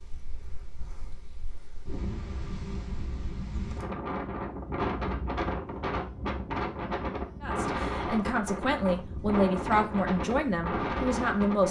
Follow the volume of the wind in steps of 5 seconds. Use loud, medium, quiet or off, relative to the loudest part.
medium, loud, loud.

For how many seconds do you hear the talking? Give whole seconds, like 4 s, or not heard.
4 s.